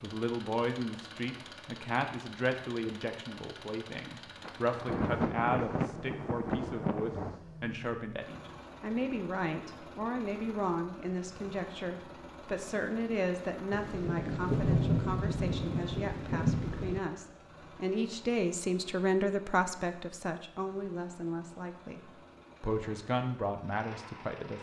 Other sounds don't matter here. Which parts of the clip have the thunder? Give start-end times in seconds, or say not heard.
4.5-7.4, 13.7-17.0.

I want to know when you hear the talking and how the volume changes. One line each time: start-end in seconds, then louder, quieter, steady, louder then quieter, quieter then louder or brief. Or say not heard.
0.0-24.5 steady.